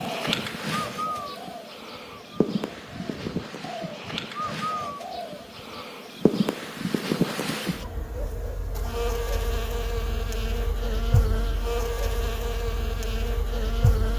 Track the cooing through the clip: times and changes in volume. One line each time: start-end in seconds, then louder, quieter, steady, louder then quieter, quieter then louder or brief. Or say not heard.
0.0-5.8 quieter then louder.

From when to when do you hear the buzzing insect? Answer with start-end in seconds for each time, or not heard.
0.0-14.1.